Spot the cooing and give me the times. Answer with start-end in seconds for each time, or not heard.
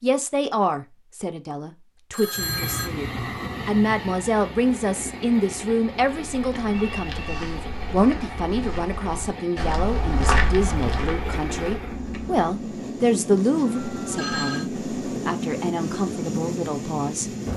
not heard.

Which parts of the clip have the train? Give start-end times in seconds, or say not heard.
2.4-17.5.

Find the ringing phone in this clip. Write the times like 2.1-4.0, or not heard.
2.1-2.9, 6.7-7.5, 13.7-14.7.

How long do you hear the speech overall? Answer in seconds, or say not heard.
17 s.